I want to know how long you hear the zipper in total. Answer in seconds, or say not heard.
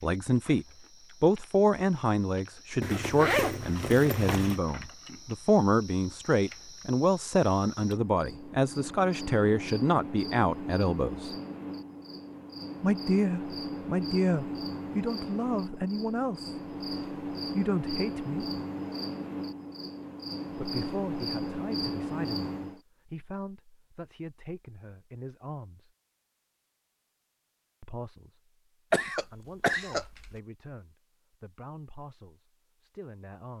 2 s.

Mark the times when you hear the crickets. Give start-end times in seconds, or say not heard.
0.0-22.8.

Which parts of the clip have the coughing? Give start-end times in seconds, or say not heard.
28.9-30.3.